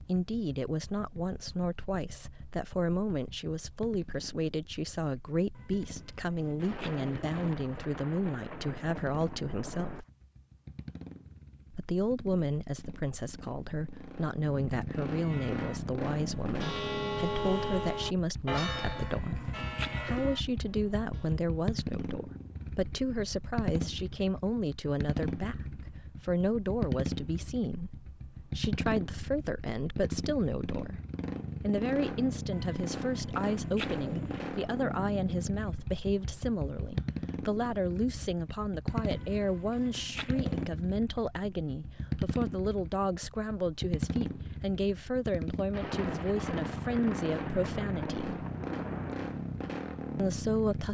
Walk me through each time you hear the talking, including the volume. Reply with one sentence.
You can hear the talking from 0.0 to 10.1 s, at a steady volume; from 11.7 to 31.0 s, at a steady volume; from 31.6 to 48.4 s, at a steady volume; and briefly from 50.1 to 50.8 s.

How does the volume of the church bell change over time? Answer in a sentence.
The loudness of the church bell goes up, then down.